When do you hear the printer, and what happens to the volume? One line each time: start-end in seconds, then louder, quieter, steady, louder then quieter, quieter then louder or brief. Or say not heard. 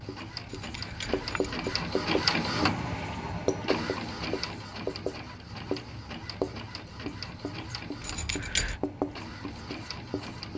0.0-10.5 quieter.